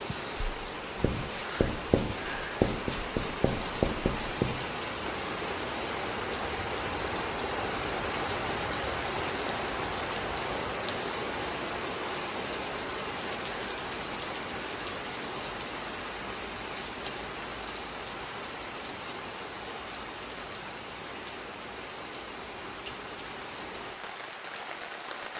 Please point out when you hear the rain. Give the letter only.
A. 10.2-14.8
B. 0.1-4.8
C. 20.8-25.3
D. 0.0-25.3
D.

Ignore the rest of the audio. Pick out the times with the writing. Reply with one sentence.
You can hear the writing from 0.1 to 4.8 s.